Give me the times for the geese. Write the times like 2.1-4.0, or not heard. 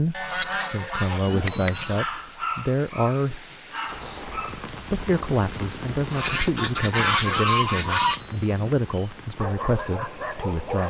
0.1-2.0, 6.1-8.2.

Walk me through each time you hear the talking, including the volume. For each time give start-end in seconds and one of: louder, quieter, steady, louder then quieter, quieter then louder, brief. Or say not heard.
0.0-10.8 steady.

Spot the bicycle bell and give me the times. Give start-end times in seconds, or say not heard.
1.2-1.9, 7.8-8.7.